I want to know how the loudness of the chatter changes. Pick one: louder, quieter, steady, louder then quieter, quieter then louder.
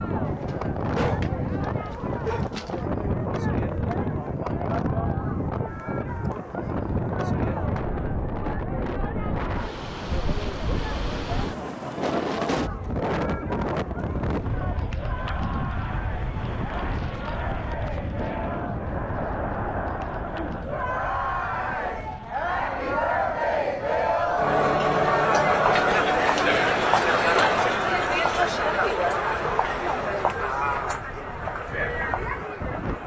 louder.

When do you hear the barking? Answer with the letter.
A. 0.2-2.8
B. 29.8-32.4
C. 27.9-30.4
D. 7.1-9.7
A.